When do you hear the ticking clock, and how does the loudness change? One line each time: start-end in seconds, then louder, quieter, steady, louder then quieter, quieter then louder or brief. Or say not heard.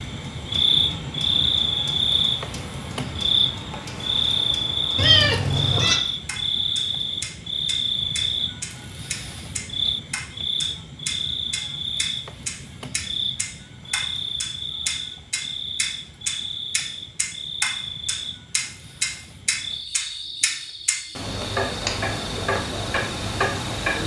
0.0-24.0 louder.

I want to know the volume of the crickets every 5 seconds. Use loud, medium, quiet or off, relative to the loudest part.
loud, loud, medium, medium, quiet.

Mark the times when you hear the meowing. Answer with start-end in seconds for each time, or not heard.
5.0-6.0.